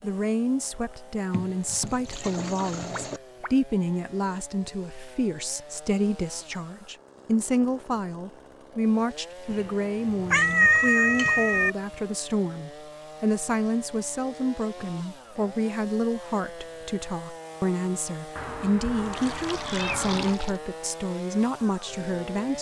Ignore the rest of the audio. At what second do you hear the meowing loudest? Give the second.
11 s.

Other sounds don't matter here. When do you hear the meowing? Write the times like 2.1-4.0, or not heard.
2.9-3.5, 10.3-11.7, 18.4-20.4.